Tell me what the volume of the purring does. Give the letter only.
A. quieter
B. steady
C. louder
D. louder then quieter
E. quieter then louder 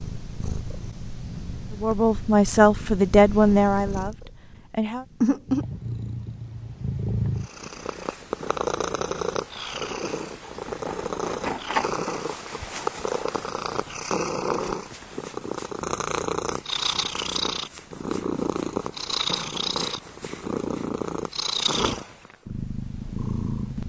C.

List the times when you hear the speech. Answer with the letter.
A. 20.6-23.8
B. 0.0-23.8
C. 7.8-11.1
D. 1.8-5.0
D.